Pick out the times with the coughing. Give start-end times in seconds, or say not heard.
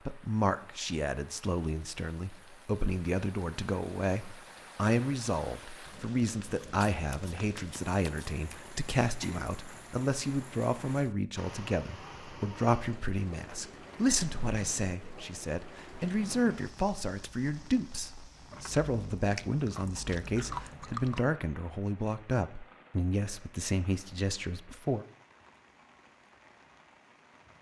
not heard.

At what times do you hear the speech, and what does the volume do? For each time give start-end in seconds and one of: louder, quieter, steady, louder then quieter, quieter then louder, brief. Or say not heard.
0.1-25.1 steady.